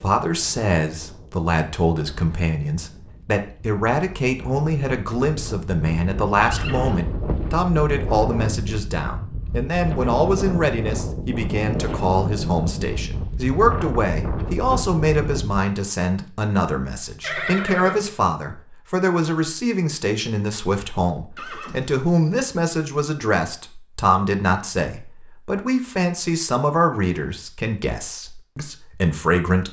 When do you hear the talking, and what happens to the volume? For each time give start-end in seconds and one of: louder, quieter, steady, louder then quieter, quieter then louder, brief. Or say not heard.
0.0-29.6 steady.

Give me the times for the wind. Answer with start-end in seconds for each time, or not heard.
0.0-15.6.